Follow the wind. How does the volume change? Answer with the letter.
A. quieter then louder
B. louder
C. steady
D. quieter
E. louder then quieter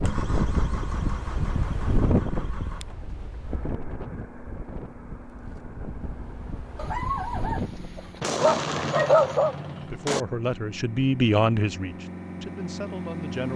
A.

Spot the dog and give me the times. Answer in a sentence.
You can hear the dog from 6.8 to 9.6 s.